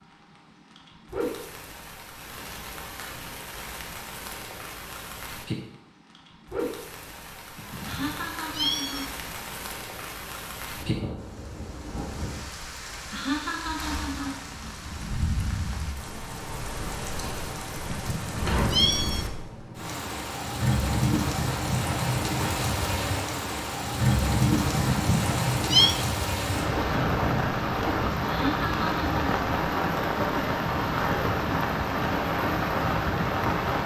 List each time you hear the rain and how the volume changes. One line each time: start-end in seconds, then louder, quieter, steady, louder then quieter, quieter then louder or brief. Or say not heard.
0.0-33.8 louder.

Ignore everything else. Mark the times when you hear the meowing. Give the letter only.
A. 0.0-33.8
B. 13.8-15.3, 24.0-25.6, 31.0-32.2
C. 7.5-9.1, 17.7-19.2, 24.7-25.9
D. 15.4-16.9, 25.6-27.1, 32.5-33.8
C.